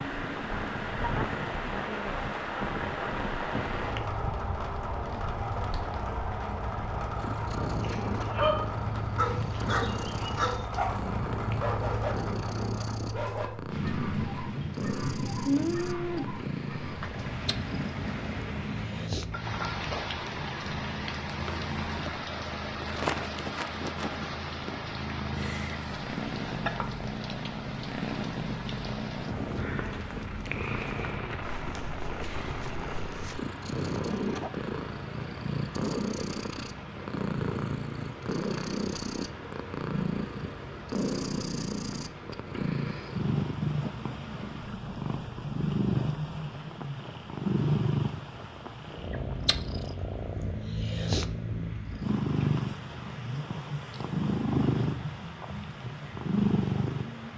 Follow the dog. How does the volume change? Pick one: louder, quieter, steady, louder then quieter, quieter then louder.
quieter.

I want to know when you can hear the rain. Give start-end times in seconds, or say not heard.
0.0-57.3.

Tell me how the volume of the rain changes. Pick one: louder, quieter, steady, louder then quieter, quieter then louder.
quieter.